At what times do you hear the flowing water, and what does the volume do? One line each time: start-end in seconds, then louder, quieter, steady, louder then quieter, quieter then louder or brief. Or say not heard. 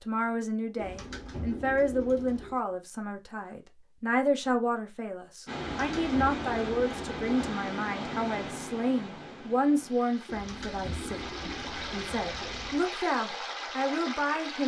5.5-14.6 quieter then louder.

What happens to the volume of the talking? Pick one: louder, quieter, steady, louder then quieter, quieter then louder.
steady.